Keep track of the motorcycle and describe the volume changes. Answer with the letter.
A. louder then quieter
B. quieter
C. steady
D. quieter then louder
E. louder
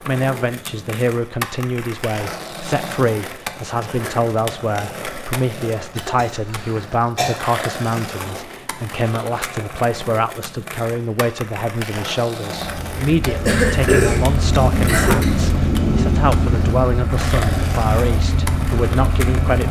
C.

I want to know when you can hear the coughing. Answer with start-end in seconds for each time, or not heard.
6.0-7.3, 13.2-15.2.